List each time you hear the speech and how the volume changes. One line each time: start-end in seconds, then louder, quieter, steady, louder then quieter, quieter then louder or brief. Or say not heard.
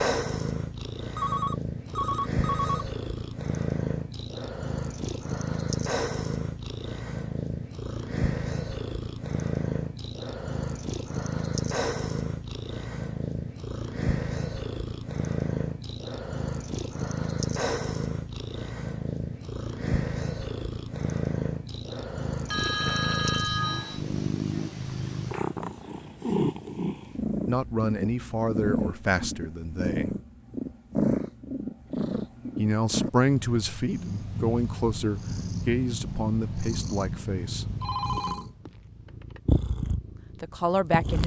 27.4-30.1 brief
32.5-37.6 quieter
40.4-41.2 brief.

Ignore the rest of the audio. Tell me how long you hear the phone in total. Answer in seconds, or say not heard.
5 s.